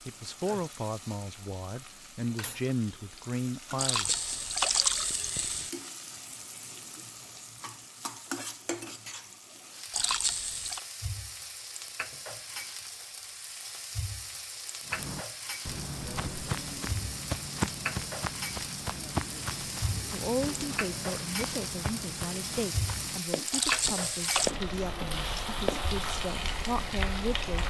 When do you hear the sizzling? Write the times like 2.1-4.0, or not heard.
0.0-27.6.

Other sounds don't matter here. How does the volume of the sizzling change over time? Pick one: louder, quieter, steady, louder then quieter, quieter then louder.
louder.